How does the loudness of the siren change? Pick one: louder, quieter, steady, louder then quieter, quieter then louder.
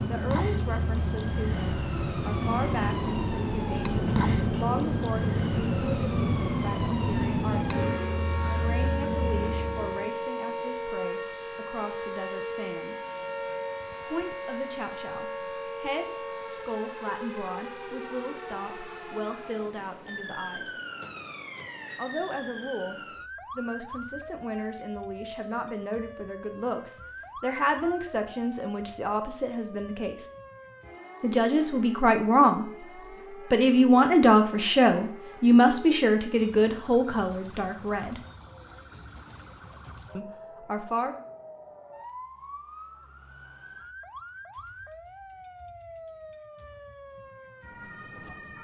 quieter.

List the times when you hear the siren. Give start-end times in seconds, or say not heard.
0.0-48.5.